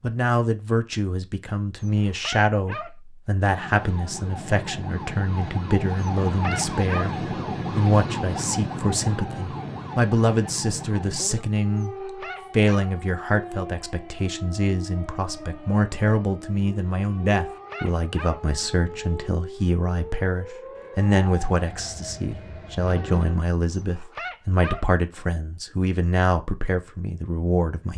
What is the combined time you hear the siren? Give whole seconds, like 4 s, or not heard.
20 s.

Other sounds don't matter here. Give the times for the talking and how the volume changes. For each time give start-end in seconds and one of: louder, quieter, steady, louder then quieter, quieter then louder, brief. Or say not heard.
0.0-27.9 steady.